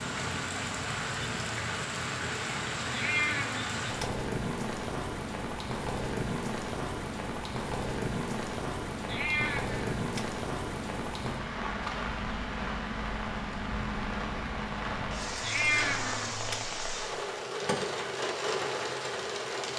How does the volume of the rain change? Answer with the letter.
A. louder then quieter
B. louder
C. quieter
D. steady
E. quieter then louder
D.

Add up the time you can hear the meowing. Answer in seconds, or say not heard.
4 s.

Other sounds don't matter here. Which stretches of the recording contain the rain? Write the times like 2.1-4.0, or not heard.
0.0-19.7.